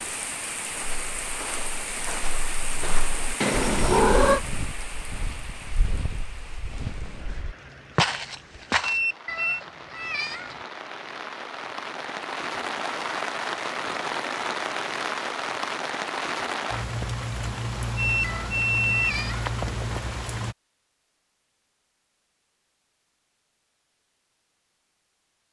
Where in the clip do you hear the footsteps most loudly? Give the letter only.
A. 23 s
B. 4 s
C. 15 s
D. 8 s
D.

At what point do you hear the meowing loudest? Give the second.
4 s.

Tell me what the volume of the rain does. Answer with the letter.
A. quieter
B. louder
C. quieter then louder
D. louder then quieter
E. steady
C.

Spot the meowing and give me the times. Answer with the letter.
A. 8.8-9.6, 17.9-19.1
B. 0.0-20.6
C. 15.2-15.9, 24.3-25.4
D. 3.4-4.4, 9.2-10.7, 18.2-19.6
D.